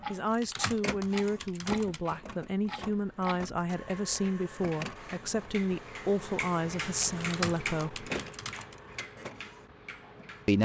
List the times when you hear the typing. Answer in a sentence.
The typing can be heard from 0.2 to 2.1 s and from 7.0 to 8.8 s.